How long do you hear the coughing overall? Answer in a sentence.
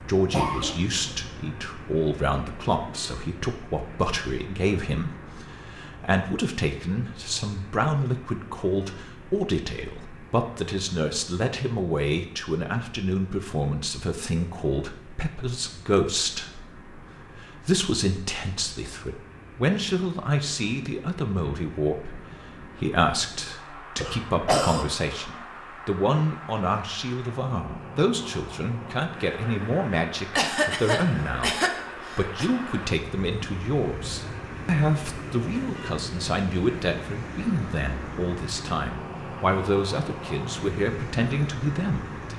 The coughing can be heard for 4 seconds in total.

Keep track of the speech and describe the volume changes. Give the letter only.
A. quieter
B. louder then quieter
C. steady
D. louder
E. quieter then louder
C.